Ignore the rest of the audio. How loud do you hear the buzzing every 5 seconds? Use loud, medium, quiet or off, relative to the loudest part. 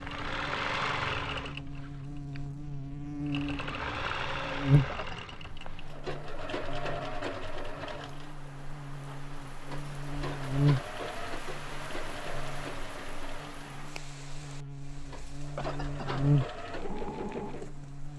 loud, quiet, loud, loud.